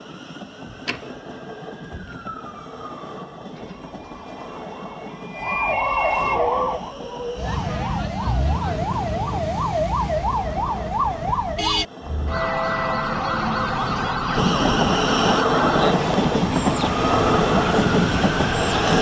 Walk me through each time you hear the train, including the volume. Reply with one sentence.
You can hear the train from 0.0 to 18.9 s, getting louder.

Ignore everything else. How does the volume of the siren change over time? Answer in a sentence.
The volume of the siren goes up.